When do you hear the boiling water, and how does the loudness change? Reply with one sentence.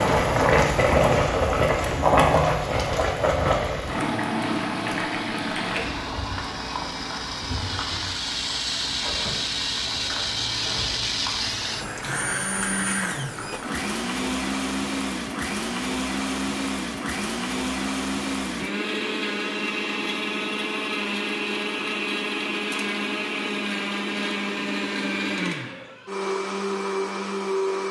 You can hear the boiling water from 0.0 to 13.8 s, getting quieter.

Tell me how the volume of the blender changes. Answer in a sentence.
The volume of the blender goes up.